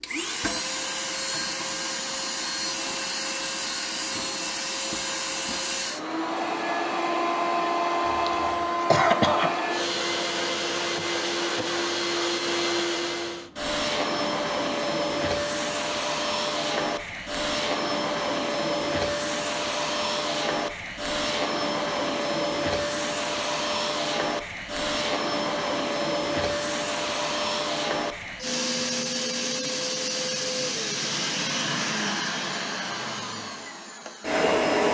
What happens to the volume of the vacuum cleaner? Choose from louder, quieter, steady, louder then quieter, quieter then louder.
steady.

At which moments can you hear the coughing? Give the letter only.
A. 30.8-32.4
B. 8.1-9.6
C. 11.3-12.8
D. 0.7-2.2
B.